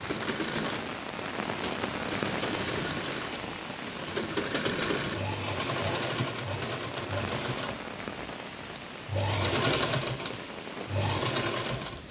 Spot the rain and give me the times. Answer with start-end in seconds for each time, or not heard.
0.0-12.0.